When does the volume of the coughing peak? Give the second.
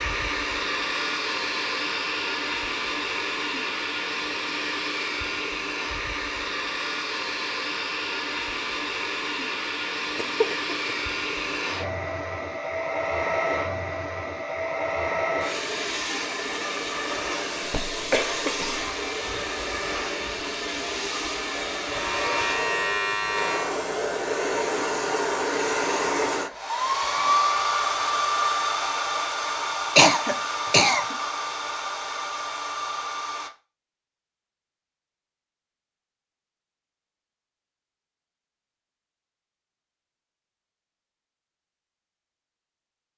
30 s.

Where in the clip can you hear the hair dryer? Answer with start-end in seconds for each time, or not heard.
0.0-33.5.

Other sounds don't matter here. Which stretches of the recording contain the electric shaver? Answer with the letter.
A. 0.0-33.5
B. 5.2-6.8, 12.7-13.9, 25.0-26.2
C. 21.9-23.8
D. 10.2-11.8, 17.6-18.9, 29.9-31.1
C.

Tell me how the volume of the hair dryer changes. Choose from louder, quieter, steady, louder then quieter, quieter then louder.
steady.